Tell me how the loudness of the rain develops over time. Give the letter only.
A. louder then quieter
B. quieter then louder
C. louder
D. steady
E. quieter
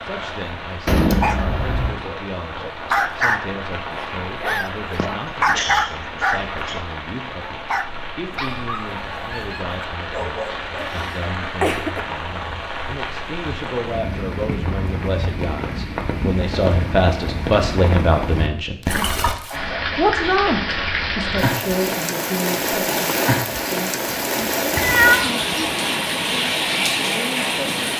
C.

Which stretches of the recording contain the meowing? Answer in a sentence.
The meowing can be heard from 0.8 to 1.9 s and from 24.1 to 25.4 s.